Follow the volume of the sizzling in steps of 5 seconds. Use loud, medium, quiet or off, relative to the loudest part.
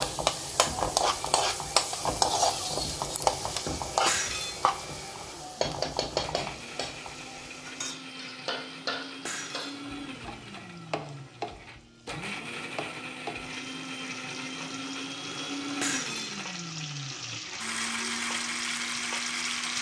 loud, medium, quiet, medium.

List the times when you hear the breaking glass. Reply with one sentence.
You can hear the breaking glass from 4.0 to 4.6 s, from 9.2 to 9.8 s and from 15.8 to 16.4 s.